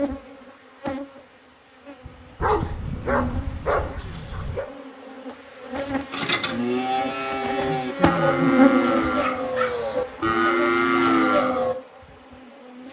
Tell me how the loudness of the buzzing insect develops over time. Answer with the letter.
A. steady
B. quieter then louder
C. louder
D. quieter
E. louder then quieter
E.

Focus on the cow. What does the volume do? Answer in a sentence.
The loudness of the cow goes up.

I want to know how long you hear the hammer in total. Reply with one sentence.
The hammer can't be heard in this clip.